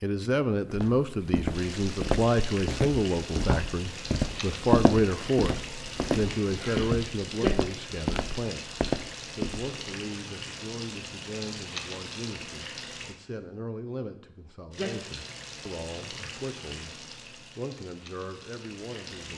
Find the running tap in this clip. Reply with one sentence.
You can hear the running tap from 1.4 to 13.2 s and from 14.7 to 19.3 s.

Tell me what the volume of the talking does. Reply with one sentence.
The volume of the talking goes down.